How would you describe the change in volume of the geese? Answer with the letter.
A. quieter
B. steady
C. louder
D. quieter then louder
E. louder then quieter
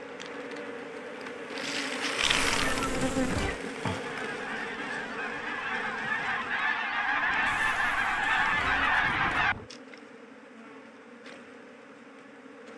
C.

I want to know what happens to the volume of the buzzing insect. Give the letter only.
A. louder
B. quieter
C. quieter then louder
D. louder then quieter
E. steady
B.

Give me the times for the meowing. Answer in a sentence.
You can hear the meowing from 2.2 to 3.6 s and from 7.5 to 9.4 s.